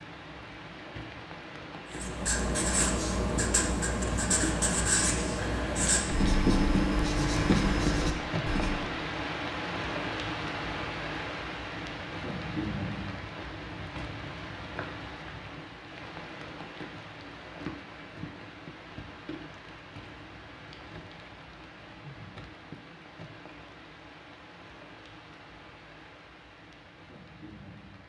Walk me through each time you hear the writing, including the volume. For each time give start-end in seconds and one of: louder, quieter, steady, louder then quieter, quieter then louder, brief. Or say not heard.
1.9-8.8 steady.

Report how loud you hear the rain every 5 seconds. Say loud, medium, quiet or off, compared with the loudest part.
medium, loud, loud, medium, quiet, quiet.